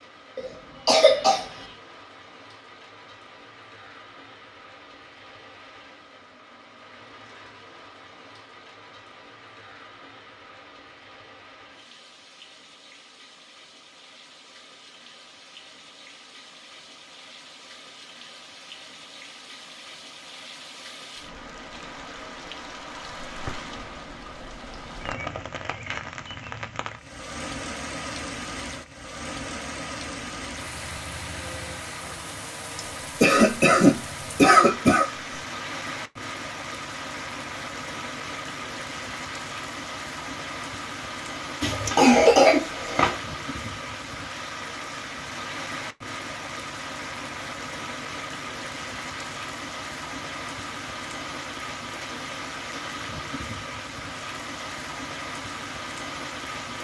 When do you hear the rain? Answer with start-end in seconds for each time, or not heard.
0.0-56.7.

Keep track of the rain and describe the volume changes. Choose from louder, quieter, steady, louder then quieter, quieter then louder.
louder.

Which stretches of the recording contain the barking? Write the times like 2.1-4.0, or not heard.
not heard.